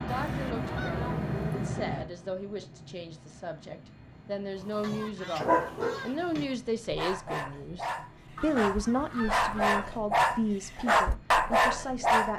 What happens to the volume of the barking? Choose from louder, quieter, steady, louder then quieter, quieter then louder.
quieter then louder.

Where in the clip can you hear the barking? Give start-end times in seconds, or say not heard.
4.8-12.3.